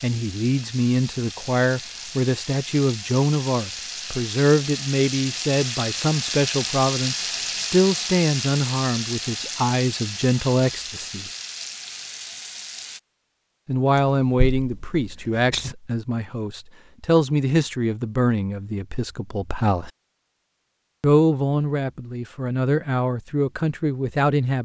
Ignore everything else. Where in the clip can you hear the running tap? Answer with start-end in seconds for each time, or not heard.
0.0-13.0.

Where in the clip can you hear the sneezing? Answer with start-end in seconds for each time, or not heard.
13.9-15.8.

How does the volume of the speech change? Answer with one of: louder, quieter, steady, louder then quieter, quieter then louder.
steady.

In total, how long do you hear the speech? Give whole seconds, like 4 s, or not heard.
21 s.